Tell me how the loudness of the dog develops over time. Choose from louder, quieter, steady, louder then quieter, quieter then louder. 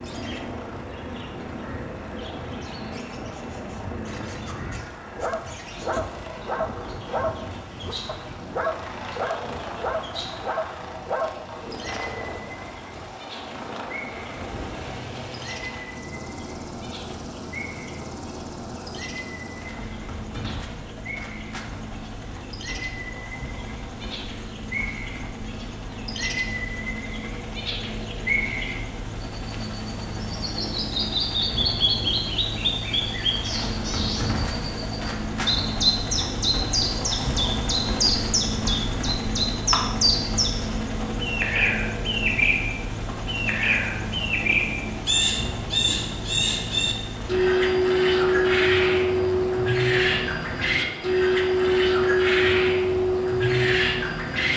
steady.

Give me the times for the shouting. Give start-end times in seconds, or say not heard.
not heard.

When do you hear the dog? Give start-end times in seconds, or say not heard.
5.2-11.7.